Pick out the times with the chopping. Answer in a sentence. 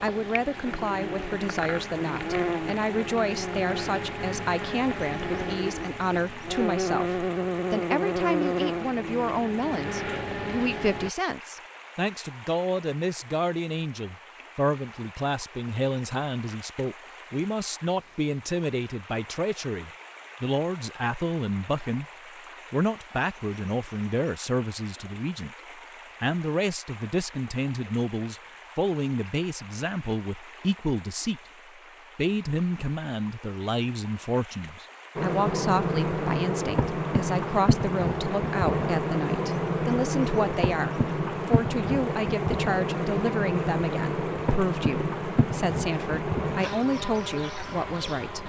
The chopping can't be heard in this clip.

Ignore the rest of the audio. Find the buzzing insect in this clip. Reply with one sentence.
You can hear the buzzing insect from 0.0 to 11.1 s and from 35.1 to 48.4 s.